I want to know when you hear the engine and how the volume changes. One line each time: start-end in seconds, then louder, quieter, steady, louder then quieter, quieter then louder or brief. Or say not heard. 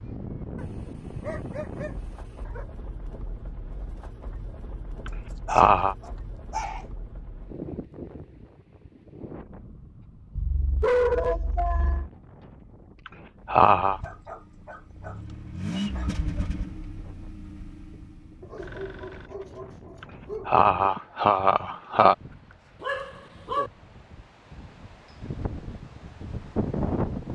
13.5-19.3 louder then quieter.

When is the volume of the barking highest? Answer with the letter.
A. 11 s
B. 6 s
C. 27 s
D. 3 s
A.